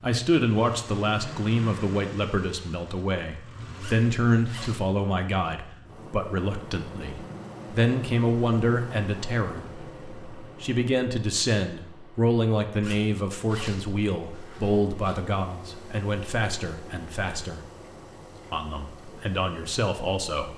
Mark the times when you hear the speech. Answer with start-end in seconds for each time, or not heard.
0.0-17.6, 18.5-20.5.